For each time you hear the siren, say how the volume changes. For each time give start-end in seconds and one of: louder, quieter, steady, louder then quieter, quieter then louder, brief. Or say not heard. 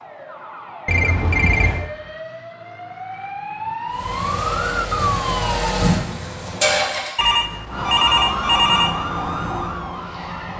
0.0-5.7 louder
7.7-10.5 brief.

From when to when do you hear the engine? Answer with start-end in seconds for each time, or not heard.
3.9-7.2.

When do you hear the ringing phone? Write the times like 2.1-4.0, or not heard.
0.8-1.9, 7.2-9.0.